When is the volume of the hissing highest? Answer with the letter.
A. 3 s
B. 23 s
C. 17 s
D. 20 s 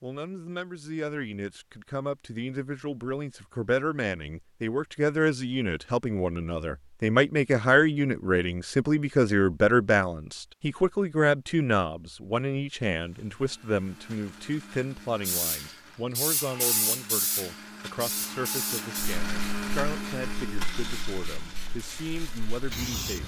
C.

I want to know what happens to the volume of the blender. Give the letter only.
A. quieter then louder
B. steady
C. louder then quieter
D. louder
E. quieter
C.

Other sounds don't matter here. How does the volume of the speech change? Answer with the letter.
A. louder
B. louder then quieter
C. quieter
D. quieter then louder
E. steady
B.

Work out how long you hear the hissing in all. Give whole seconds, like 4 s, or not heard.
8 s.